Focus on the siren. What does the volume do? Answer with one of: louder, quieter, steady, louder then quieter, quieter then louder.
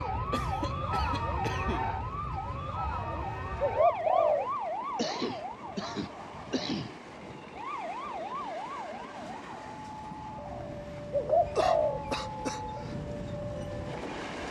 quieter.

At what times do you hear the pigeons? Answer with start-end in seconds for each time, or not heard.
2.9-4.5, 10.4-12.0.